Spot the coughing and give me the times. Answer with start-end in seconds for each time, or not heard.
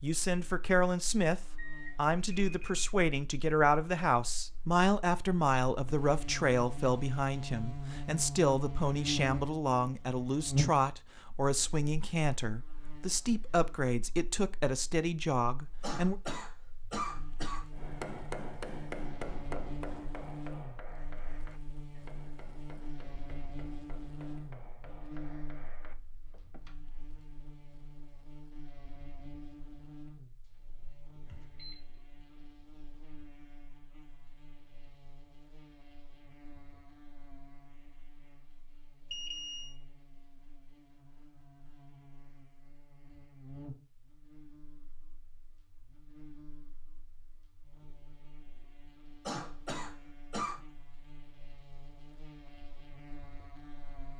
15.8-17.6, 49.2-50.6.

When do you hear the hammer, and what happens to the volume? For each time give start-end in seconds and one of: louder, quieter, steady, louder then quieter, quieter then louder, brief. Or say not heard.
17.7-26.8 quieter.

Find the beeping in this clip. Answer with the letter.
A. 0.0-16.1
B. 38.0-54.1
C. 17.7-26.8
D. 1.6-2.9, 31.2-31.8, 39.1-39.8
D.